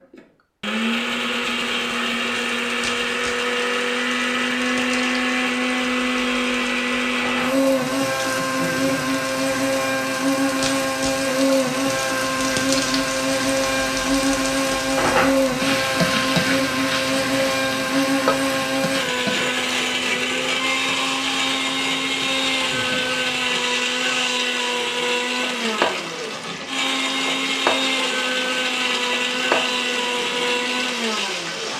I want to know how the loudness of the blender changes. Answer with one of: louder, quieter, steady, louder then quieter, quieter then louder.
steady.